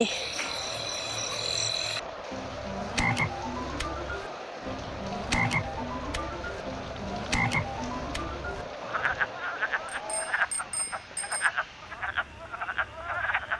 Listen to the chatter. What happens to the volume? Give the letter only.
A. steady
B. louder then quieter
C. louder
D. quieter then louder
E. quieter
A.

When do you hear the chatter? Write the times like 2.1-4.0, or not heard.
0.1-10.4.